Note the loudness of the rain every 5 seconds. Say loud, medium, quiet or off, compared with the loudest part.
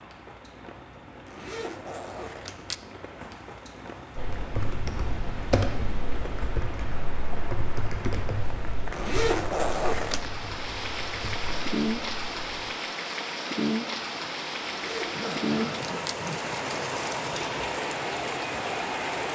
quiet, medium, loud, loud.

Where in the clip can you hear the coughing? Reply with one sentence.
You can hear the coughing from 15.1 to 16.4 s.